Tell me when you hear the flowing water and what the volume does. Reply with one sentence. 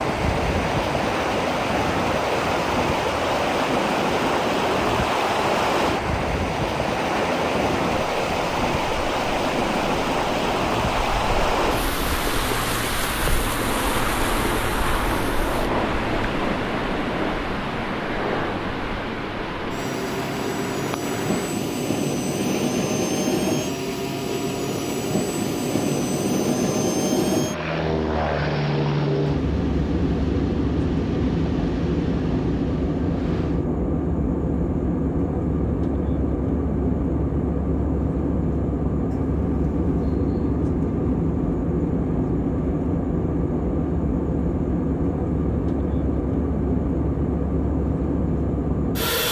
You can hear the flowing water from 0.0 to 33.7 s, getting quieter.